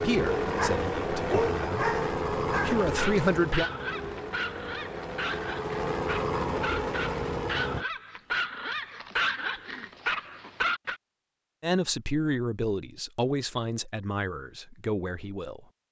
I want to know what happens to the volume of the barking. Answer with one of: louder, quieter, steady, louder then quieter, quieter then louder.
quieter then louder.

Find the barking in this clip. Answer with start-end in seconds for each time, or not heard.
0.4-10.9.